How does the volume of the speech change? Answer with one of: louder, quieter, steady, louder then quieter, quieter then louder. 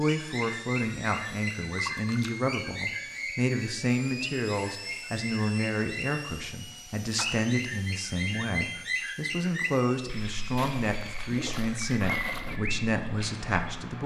steady.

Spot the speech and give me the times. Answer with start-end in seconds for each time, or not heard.
0.0-14.0.